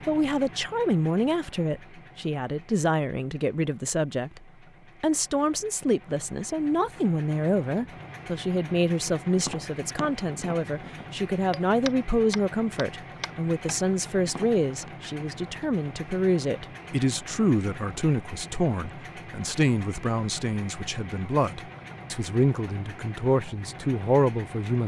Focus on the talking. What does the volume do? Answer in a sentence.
The loudness of the talking stays about the same.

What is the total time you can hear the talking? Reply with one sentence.
You can hear the talking for 24 seconds altogether.